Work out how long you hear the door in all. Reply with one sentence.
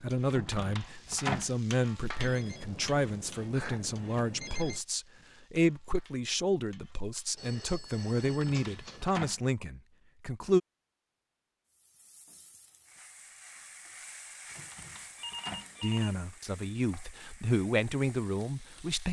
The door can be heard for 4 seconds in total.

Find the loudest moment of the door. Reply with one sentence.
The loudest moment of the door is at 1 second.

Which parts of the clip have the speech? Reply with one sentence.
You can hear the speech from 0.0 to 10.6 s and from 15.8 to 19.0 s.